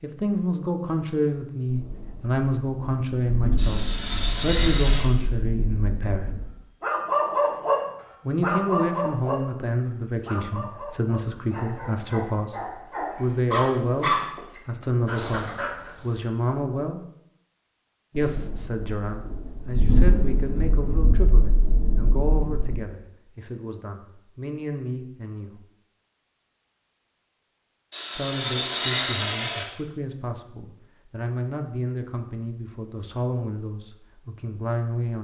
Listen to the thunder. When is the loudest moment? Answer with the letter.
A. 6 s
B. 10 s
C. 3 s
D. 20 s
D.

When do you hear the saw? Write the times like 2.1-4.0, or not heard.
3.5-5.1, 27.9-29.6.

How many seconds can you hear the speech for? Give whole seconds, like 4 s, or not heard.
29 s.